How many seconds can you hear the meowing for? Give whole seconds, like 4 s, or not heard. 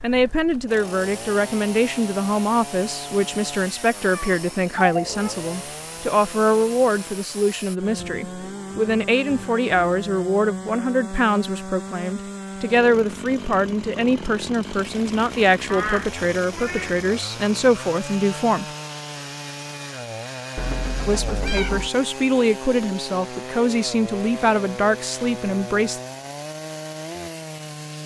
4 s.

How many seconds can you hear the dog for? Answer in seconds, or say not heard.
not heard.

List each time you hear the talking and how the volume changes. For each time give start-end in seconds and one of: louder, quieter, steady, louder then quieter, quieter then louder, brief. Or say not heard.
0.0-18.6 steady
21.1-26.0 steady.